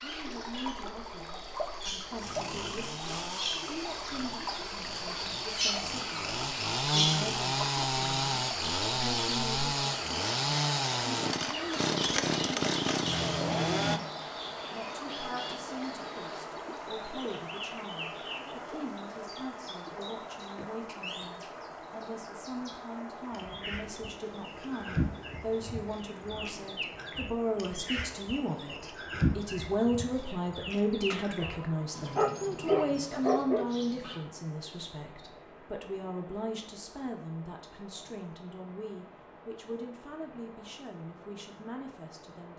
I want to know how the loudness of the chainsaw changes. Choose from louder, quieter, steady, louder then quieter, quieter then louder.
louder.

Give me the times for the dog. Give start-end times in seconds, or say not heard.
31.1-33.6.